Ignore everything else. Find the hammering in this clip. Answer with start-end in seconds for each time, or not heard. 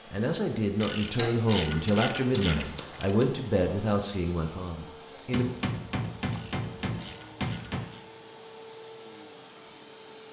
1.1-3.3, 5.3-7.9.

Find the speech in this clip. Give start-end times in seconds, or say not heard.
0.1-5.5.